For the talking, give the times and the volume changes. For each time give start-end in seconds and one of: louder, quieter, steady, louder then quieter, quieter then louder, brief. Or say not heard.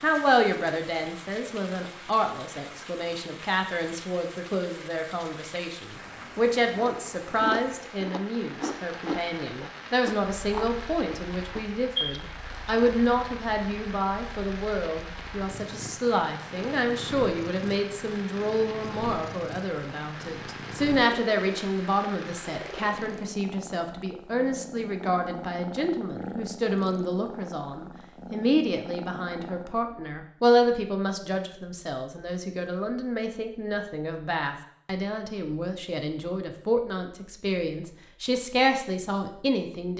0.0-39.9 steady.